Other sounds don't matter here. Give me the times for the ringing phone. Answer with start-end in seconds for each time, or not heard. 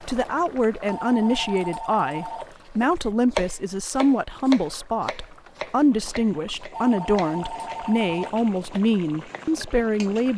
0.8-2.5, 6.7-8.3.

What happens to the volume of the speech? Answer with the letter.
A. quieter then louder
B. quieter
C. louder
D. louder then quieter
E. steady
E.